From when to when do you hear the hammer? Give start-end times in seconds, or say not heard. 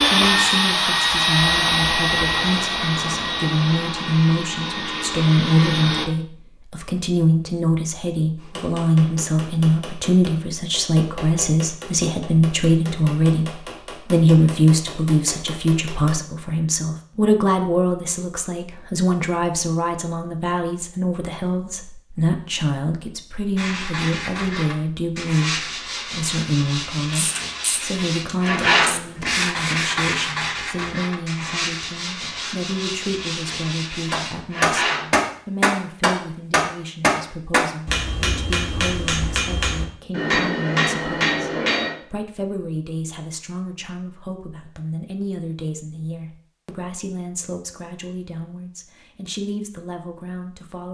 8.3-16.2, 34.1-42.0.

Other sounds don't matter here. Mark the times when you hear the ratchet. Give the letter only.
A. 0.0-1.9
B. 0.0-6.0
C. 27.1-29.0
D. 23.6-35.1
C.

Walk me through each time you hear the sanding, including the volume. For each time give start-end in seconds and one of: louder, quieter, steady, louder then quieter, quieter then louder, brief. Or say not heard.
23.6-35.1 louder then quieter.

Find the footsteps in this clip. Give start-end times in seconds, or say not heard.
not heard.